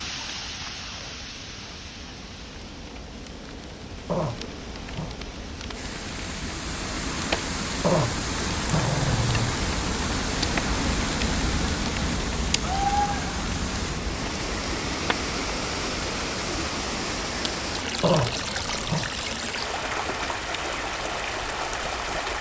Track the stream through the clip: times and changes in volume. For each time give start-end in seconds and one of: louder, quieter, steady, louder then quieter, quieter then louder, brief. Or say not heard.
0.0-22.3 louder.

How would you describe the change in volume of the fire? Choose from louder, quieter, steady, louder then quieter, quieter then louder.
louder then quieter.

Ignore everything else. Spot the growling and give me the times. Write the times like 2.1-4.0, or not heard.
4.0-5.2, 7.8-9.6, 18.0-19.1.